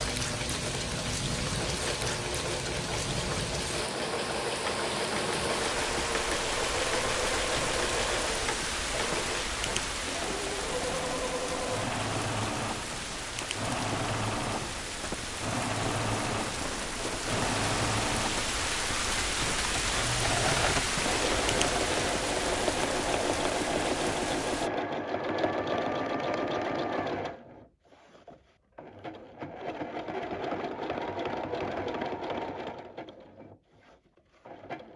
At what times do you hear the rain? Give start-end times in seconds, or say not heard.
0.0-24.7.